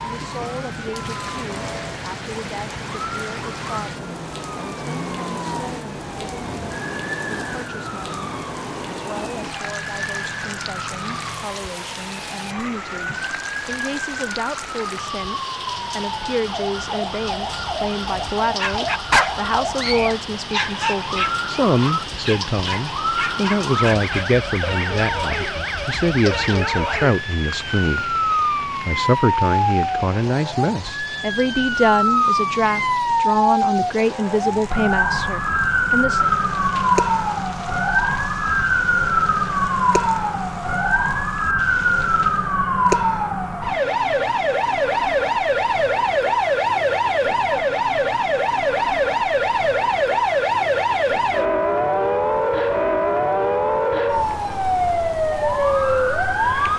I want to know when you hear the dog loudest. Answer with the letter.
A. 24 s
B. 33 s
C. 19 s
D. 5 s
C.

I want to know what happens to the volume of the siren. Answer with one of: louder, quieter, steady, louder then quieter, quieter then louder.
louder.